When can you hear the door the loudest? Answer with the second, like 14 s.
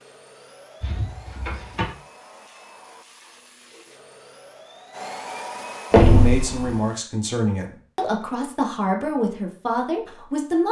6 s.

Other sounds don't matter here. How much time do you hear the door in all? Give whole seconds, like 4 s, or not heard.
2 s.